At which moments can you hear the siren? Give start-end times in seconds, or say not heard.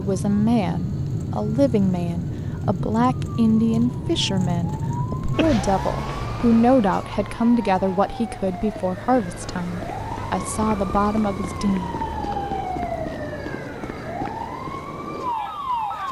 0.0-16.0.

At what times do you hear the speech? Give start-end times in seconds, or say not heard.
0.0-11.9.